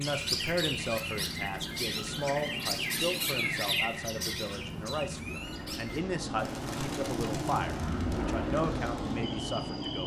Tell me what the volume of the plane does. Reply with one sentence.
The loudness of the plane goes up.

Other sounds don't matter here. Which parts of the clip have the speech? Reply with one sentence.
You can hear the speech from 0.0 to 10.0 s.